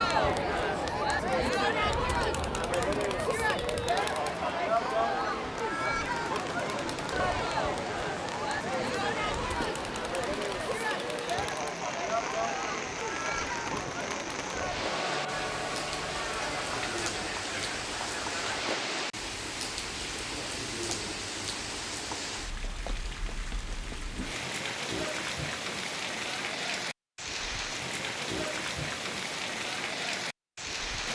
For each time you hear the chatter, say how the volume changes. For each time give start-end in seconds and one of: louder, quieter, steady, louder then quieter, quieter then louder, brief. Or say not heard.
0.0-18.8 quieter.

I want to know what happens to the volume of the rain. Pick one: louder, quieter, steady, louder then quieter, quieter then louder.
louder.